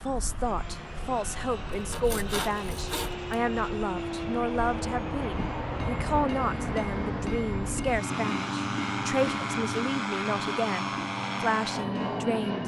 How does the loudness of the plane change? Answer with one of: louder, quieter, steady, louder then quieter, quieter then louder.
louder.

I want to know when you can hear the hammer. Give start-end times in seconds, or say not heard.
5.3-12.3.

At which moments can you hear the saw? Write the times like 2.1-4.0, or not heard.
1.7-3.3.